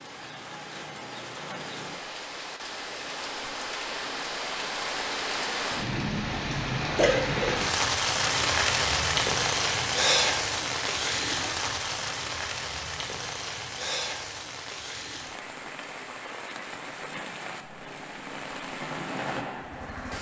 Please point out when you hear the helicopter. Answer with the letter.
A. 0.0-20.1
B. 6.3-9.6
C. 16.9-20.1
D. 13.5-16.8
C.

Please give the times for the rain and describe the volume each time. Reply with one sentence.
The rain can be heard from 0.0 to 20.1 s, getting louder then quieter.